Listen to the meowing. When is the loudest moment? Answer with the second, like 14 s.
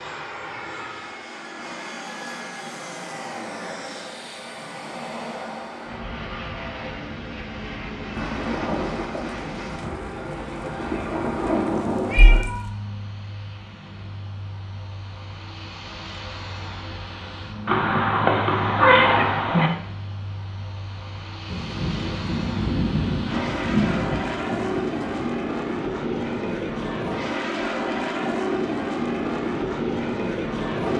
19 s.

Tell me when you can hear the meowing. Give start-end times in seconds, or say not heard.
11.8-12.7, 17.6-19.7.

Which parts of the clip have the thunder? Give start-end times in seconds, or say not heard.
8.2-12.4, 21.4-25.2.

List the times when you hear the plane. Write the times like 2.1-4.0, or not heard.
0.0-30.9.